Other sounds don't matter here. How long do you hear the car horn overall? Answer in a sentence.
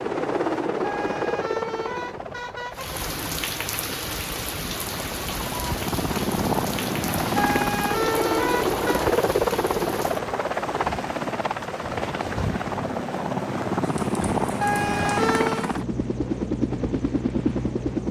You can hear the car horn for 5 seconds altogether.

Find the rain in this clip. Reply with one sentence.
You can hear the rain from 2.7 to 18.0 s.